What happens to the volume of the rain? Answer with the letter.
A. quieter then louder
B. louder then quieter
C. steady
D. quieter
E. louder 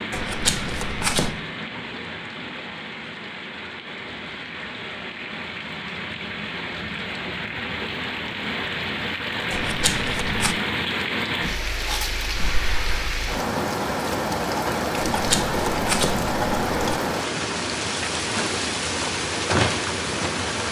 E.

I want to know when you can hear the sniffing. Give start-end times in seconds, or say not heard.
12.3-13.2.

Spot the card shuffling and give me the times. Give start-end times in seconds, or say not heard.
0.1-1.4, 9.5-10.6, 14.9-16.8.